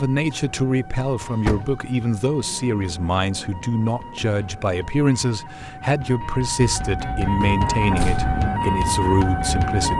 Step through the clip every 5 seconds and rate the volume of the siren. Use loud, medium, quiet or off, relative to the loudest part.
quiet, loud.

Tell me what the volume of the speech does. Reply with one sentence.
The loudness of the speech stays about the same.